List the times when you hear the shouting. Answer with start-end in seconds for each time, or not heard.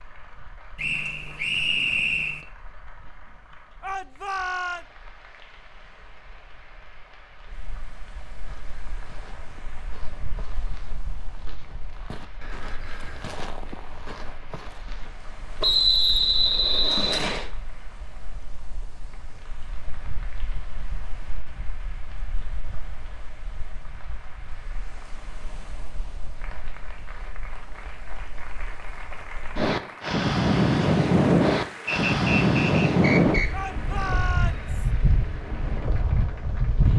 3.8-4.8, 33.5-34.9.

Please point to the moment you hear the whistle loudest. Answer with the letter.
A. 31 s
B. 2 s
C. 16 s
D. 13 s
C.